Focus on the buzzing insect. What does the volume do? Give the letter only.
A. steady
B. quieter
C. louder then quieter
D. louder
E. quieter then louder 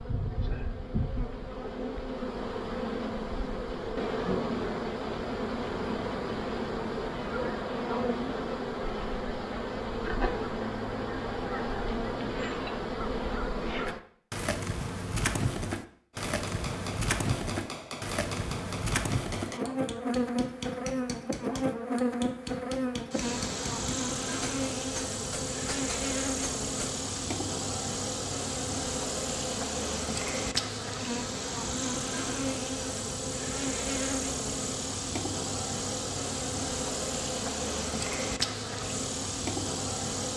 A.